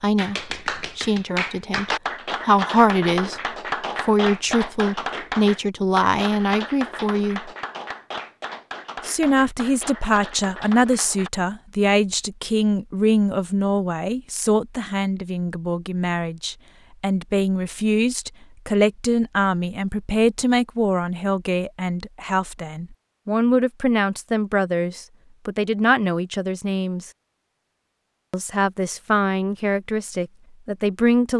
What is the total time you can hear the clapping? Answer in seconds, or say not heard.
11 s.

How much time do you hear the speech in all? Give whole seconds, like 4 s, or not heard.
28 s.